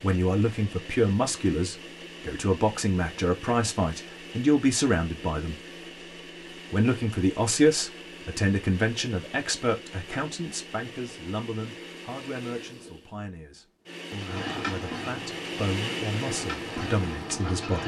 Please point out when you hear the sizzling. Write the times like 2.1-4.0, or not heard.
14.2-17.8.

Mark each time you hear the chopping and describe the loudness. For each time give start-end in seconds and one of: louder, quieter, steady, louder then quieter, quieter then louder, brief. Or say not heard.
not heard.